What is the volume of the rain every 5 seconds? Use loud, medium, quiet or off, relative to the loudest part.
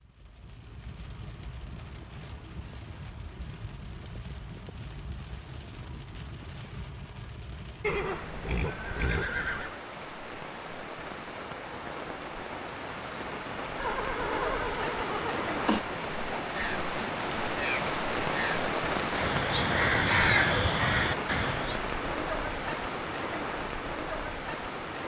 quiet, quiet, medium, loud, loud.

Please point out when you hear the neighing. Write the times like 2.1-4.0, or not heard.
7.8-9.8, 13.8-15.8.